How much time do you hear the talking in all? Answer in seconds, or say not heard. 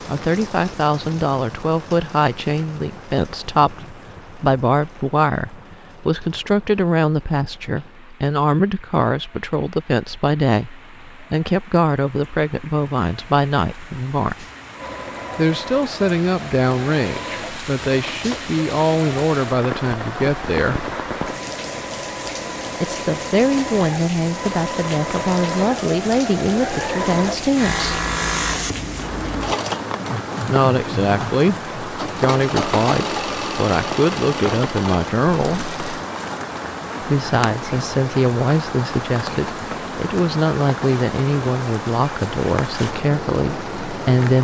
38 s.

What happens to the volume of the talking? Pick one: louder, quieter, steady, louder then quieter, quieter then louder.
steady.